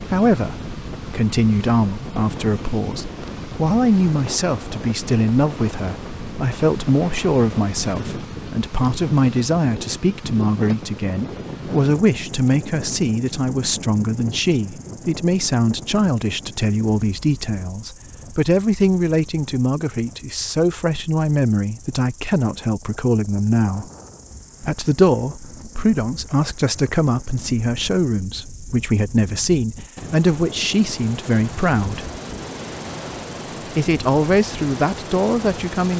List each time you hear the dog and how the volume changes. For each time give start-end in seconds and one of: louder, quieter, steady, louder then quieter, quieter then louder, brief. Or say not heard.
not heard.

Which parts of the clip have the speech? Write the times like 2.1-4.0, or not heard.
0.0-23.9, 24.6-32.1, 33.8-35.9.